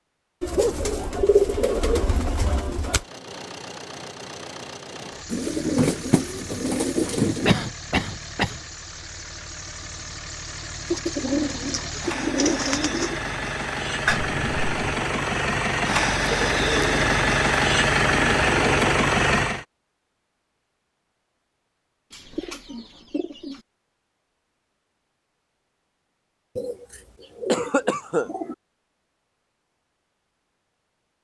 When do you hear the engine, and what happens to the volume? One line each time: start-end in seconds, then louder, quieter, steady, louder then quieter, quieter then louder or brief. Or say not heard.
3.0-19.6 louder.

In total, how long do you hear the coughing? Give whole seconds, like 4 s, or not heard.
3 s.